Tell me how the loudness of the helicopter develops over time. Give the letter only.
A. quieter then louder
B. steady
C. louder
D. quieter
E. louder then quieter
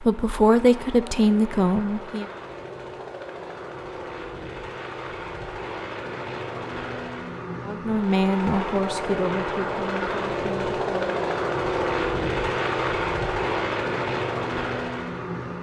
C.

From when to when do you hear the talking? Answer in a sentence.
The talking can be heard from 0.0 to 2.3 s and from 7.7 to 11.2 s.